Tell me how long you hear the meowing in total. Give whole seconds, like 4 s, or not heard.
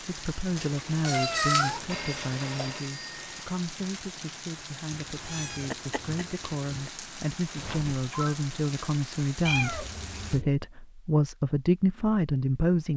5 s.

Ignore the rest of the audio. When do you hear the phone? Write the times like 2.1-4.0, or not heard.
1.9-3.2, 7.5-8.3.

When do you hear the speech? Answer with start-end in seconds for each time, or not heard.
0.1-12.9.